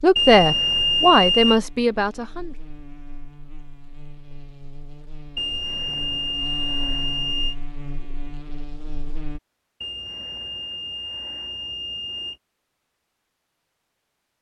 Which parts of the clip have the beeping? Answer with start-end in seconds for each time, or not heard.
0.1-1.6, 5.3-7.5, 9.8-12.3.